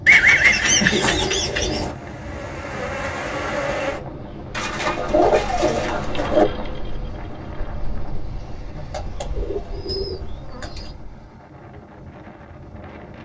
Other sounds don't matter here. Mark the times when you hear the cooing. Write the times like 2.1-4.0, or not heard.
0.1-1.9, 4.5-6.5, 8.9-10.9.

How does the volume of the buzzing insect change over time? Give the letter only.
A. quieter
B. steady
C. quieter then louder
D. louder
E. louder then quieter
A.